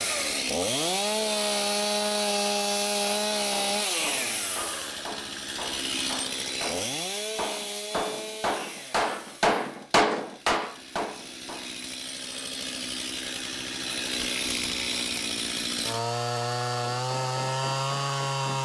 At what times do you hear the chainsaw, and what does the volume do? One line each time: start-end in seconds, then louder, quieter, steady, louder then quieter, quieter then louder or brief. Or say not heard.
0.0-18.5 quieter then louder.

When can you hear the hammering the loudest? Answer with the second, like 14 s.
10 s.